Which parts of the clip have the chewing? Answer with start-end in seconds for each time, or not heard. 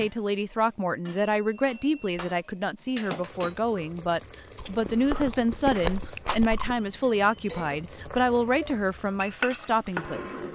4.5-6.8.